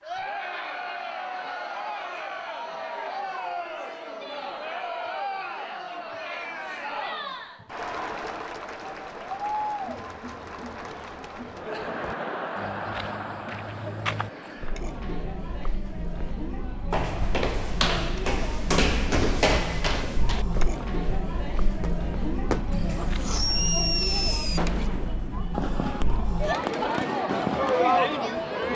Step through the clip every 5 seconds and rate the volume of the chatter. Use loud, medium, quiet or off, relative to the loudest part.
medium, medium, medium, medium, medium, loud.